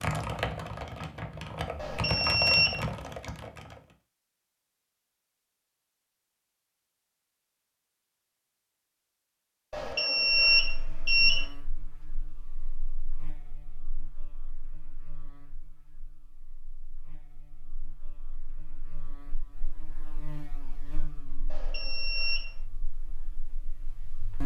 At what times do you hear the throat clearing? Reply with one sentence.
You can't hear the throat clearing here.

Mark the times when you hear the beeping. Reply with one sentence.
You can hear the beeping from 1.8 to 2.8 s, from 9.7 to 11.4 s and from 21.5 to 22.4 s.